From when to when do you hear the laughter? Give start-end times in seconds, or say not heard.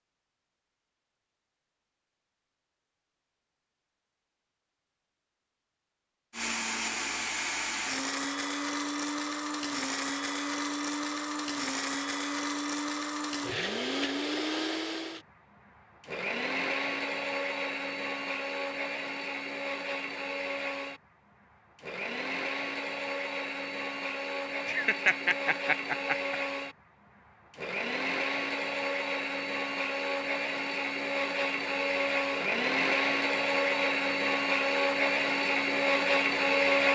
24.6-26.4.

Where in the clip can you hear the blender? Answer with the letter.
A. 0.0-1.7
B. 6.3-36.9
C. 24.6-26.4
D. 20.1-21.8
B.